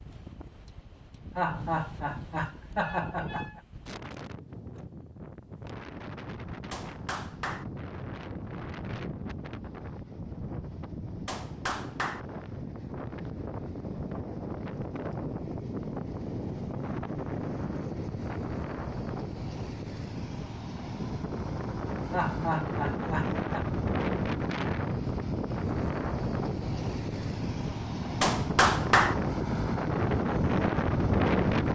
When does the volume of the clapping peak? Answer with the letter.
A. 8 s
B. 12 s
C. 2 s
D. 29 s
D.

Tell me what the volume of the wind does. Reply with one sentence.
The volume of the wind goes up.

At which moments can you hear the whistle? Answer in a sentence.
You can't hear the whistle here.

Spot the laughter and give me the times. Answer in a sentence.
The laughter can be heard from 1.4 to 3.6 s and from 22.1 to 23.6 s.